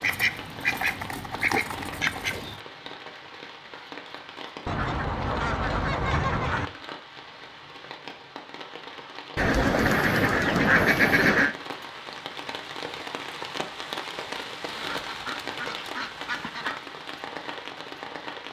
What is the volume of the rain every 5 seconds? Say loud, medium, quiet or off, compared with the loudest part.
medium, medium, loud, loud.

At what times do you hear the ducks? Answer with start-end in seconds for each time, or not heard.
0.0-2.6, 4.7-6.7, 9.3-11.6, 14.8-16.8.